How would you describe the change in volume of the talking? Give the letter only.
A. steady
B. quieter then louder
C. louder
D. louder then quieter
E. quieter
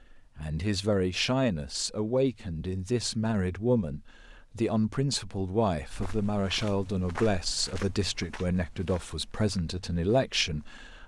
A.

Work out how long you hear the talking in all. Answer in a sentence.
You can hear the talking for 11 seconds altogether.